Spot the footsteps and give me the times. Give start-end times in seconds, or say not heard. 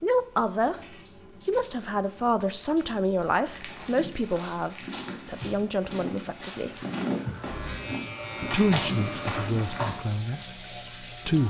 3.5-9.9.